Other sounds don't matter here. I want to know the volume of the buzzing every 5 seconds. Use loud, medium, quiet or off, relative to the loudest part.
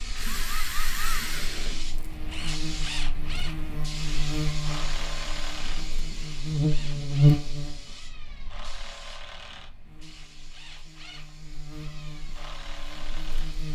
medium, loud, quiet.